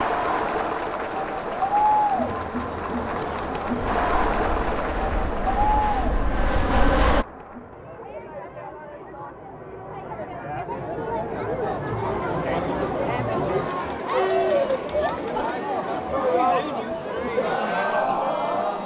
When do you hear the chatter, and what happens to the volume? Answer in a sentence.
You can hear the chatter from 0.0 to 18.8 s, getting quieter then louder.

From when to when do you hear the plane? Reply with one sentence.
The plane can be heard from 3.8 to 7.2 s.